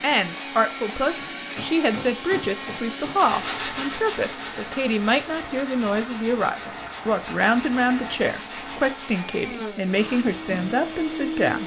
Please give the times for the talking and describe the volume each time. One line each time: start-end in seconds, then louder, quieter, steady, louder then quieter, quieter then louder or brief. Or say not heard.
0.0-11.6 steady.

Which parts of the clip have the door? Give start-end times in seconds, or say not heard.
not heard.